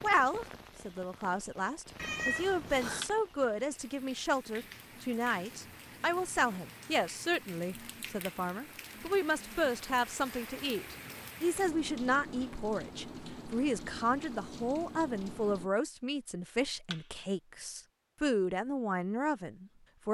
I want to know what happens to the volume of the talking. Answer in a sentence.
The loudness of the talking stays about the same.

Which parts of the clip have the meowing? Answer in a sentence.
The meowing can be heard from 1.9 to 3.1 s.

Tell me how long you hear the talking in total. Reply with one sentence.
The talking can be heard for 20 seconds in total.